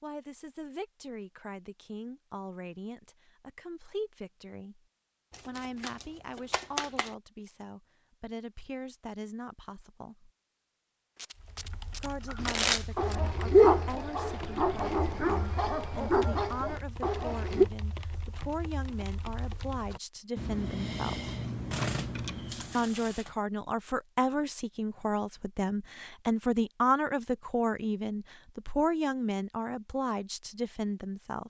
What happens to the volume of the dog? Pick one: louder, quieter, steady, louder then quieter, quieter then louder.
quieter.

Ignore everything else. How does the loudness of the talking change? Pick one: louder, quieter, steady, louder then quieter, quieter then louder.
louder.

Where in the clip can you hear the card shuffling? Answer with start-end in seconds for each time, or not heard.
5.3-7.1, 11.2-13.2, 21.7-23.4.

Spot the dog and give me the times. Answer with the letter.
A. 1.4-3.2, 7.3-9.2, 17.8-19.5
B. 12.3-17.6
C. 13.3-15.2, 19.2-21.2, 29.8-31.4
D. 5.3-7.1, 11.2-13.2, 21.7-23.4
B.